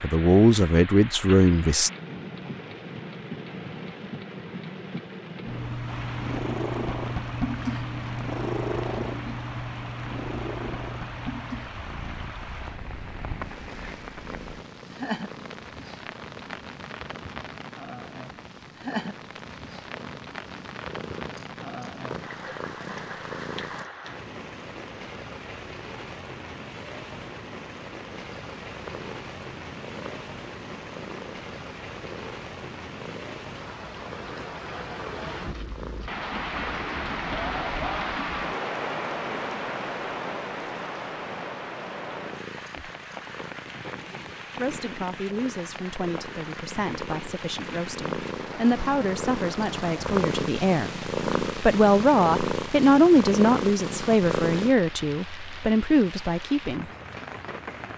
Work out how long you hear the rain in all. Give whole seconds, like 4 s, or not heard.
58 s.